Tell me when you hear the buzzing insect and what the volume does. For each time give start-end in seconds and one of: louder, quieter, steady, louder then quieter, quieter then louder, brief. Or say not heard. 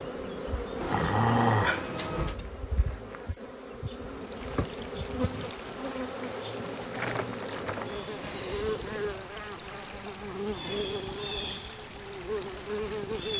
0.0-13.3 steady.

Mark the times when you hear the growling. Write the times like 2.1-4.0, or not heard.
0.8-2.4.